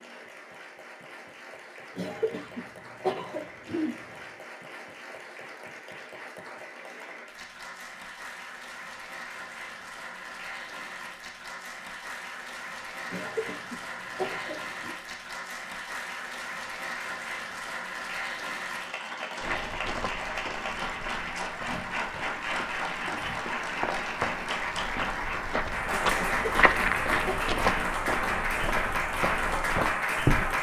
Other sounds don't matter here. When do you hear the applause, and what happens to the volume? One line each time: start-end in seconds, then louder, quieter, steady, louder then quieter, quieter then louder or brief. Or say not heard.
0.0-30.5 louder.